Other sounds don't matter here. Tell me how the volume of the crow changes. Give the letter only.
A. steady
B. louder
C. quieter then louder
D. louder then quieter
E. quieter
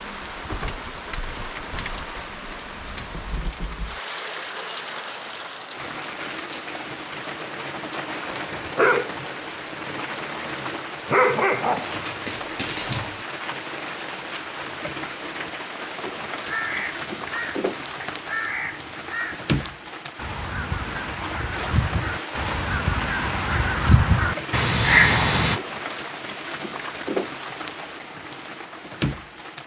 B.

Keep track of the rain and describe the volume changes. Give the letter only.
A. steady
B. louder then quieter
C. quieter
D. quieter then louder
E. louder
A.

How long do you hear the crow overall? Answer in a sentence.
The crow can be heard for 9 seconds in total.